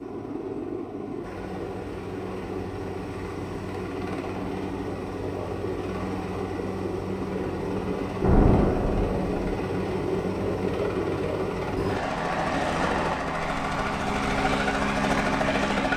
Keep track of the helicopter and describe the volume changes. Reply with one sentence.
The volume of the helicopter goes up.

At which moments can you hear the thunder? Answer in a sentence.
You can hear the thunder from 8.2 to 9.5 s.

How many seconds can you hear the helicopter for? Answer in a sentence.
You can hear the helicopter for 16 seconds altogether.